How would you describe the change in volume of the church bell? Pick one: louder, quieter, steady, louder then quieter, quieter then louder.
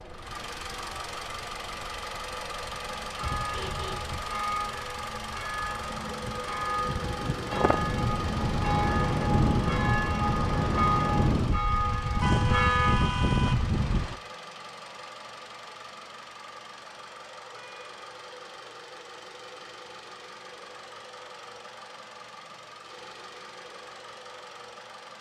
louder.